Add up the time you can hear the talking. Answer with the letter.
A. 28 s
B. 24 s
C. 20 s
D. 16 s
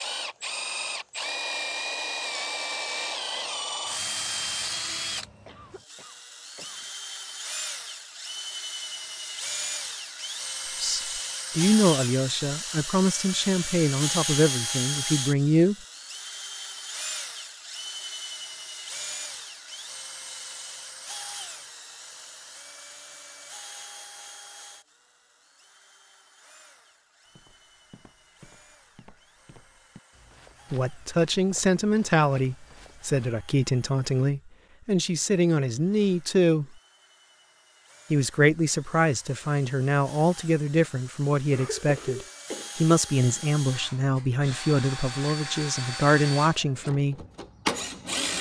C.